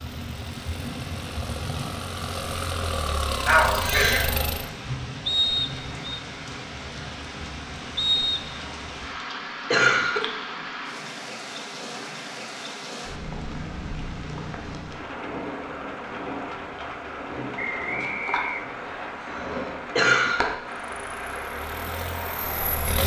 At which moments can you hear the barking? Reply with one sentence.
You can't hear the barking here.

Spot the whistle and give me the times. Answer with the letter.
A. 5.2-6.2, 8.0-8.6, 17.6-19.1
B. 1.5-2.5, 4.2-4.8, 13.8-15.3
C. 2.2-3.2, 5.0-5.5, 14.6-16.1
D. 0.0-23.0
A.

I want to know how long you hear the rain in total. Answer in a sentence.
The rain can be heard for 23 seconds in total.